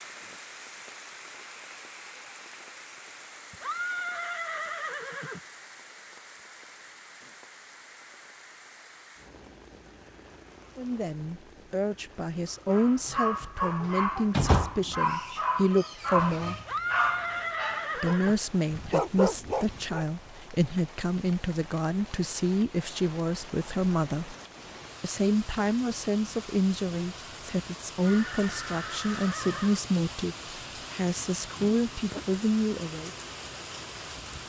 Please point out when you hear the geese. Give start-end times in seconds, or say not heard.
not heard.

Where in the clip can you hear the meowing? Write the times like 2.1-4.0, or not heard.
not heard.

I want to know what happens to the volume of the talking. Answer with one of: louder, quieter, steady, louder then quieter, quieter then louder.
steady.